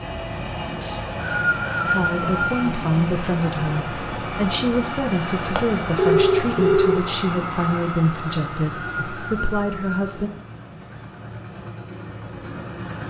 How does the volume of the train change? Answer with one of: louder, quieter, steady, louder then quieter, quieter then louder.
quieter.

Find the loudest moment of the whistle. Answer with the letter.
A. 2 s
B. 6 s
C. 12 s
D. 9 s
A.